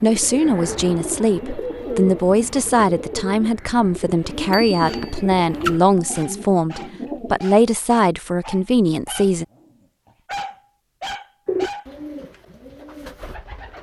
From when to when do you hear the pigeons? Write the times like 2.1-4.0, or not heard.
0.0-7.4, 11.4-13.7.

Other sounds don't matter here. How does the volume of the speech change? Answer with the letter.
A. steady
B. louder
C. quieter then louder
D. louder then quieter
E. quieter
A.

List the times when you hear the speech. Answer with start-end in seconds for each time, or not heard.
0.0-9.4.